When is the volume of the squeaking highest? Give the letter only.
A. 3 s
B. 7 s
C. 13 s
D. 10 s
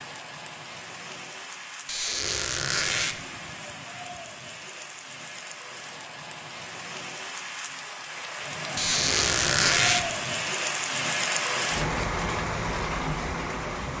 D.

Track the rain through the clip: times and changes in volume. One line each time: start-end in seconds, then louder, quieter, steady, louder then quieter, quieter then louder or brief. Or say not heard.
0.0-13.9 louder.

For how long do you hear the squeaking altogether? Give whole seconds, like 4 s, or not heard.
3 s.